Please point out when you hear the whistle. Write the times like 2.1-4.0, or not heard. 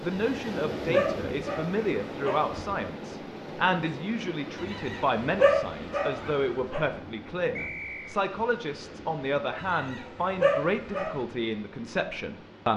7.5-8.2.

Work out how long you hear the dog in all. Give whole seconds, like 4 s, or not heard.
6 s.